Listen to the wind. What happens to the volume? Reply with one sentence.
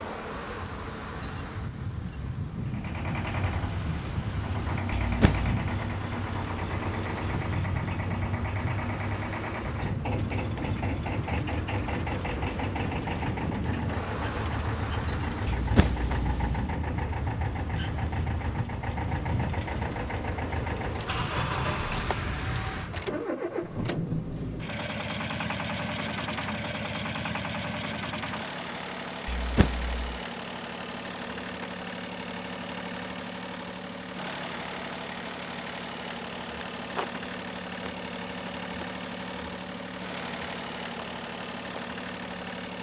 The loudness of the wind stays about the same.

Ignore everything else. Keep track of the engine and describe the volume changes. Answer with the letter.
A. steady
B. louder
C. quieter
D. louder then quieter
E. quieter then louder
A.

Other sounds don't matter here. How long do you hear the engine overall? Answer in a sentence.
The engine can be heard for 40 seconds in total.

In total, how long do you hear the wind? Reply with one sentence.
The wind can be heard for 23 seconds in total.